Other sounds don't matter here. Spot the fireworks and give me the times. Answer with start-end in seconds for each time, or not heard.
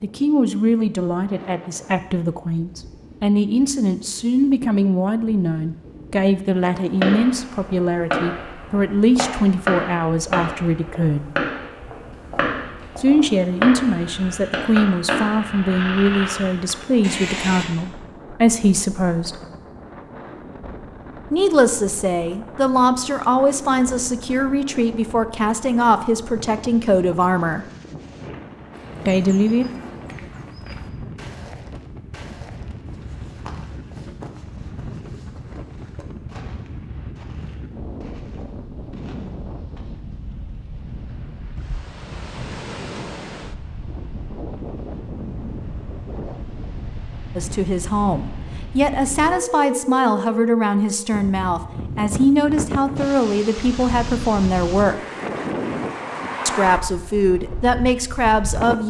6.6-17.6.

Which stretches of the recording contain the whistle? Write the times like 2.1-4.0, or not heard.
not heard.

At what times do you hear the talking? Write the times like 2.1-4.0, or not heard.
0.0-11.2, 12.9-19.4, 21.3-27.6, 29.1-29.6, 47.4-55.0, 56.5-58.8.